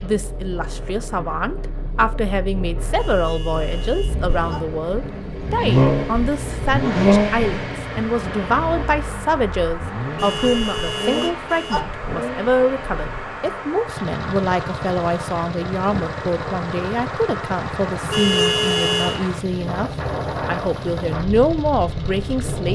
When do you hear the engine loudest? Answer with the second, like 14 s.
7 s.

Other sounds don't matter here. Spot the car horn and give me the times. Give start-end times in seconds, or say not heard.
3.0-4.6, 10.2-11.8, 18.1-19.2.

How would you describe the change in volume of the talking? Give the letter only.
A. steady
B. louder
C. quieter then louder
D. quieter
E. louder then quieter
A.